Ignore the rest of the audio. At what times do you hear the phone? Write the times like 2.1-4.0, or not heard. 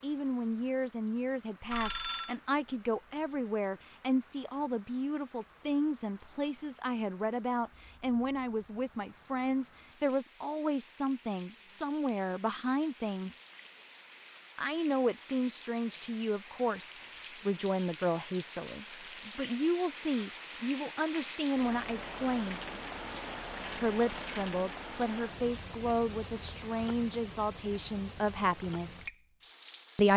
1.7-2.4, 23.6-24.6.